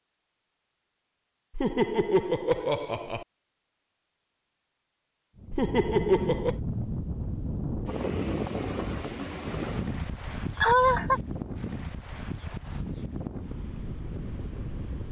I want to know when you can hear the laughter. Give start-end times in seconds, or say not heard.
1.6-3.2, 5.5-6.6, 10.6-11.2.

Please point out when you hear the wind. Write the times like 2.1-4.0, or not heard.
5.3-15.0.